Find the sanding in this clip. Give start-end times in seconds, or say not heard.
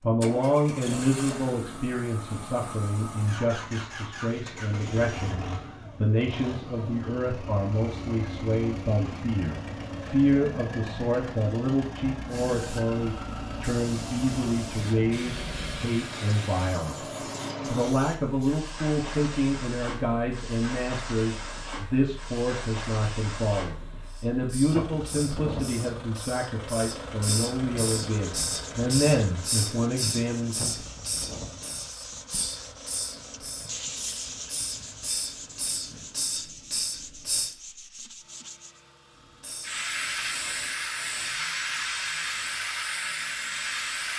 28.1-38.8.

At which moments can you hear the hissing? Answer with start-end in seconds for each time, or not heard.
12.2-37.5, 39.4-44.1.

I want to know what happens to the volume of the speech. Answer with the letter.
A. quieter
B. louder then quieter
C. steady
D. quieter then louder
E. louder
C.